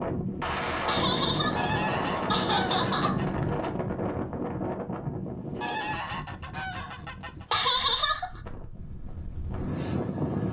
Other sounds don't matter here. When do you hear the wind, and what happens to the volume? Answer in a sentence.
You can hear the wind from 0.0 to 10.4 s, getting quieter then louder.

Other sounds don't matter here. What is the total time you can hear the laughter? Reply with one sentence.
The laughter can be heard for 3 seconds in total.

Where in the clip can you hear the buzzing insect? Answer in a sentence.
The buzzing insect can't be heard in this clip.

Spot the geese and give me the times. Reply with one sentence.
The geese can be heard from 1.6 to 3.2 s and from 5.6 to 7.5 s.